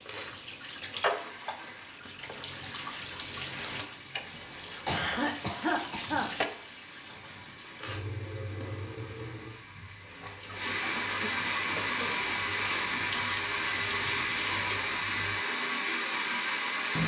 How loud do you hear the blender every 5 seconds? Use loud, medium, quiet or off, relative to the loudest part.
quiet, quiet, loud, loud.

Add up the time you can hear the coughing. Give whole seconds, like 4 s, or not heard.
3 s.